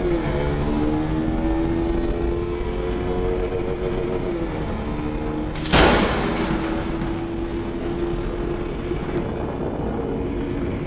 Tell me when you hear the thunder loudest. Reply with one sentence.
The volume of the thunder peaks at 6 seconds.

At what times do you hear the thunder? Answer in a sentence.
You can hear the thunder from 5.5 to 9.2 s.